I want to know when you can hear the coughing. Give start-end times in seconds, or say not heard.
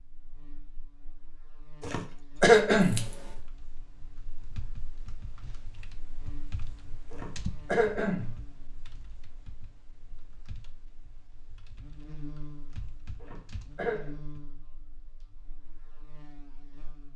1.8-3.0, 7.1-8.3, 13.2-14.1.